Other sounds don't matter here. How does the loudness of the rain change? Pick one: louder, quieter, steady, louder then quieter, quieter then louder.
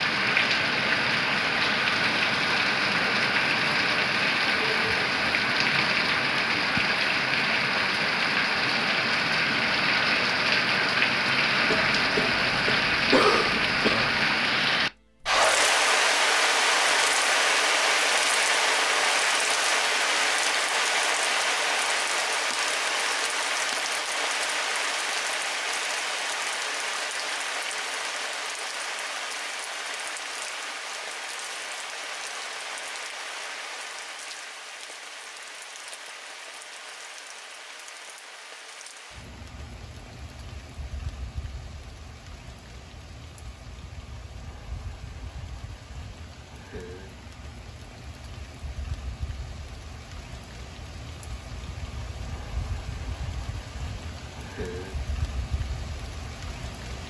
quieter.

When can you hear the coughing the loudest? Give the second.
13 s.